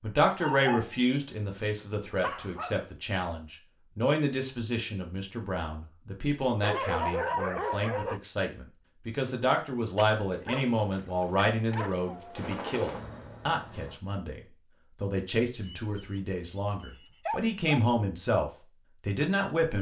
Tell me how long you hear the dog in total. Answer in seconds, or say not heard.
9 s.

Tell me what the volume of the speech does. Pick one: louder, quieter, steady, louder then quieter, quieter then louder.
steady.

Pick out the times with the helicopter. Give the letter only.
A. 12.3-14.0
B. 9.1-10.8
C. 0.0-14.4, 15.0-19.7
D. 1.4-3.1
A.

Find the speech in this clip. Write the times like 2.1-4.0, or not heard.
0.0-14.4, 15.0-19.7.